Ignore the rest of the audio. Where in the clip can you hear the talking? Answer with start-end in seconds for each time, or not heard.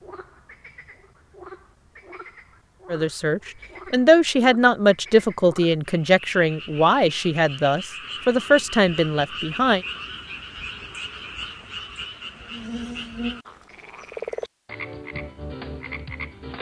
2.9-9.8.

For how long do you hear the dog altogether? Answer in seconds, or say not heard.
not heard.